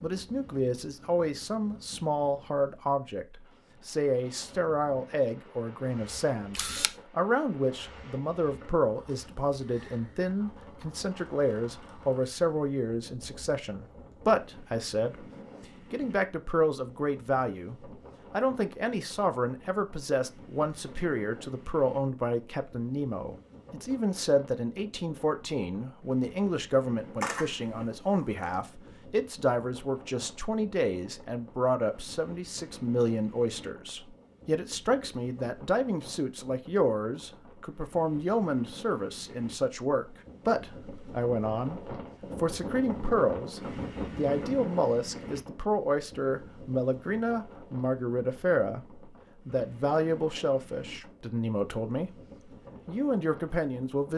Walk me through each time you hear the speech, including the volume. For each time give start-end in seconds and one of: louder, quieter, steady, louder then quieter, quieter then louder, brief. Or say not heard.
0.0-15.2 steady
15.9-52.1 steady
52.9-54.1 brief.